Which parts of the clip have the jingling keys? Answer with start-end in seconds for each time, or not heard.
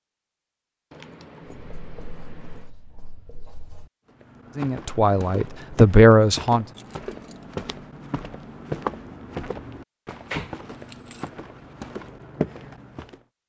0.9-2.7, 6.7-7.5, 10.1-11.8.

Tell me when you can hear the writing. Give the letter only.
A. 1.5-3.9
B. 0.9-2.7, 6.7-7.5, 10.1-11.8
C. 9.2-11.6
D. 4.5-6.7
A.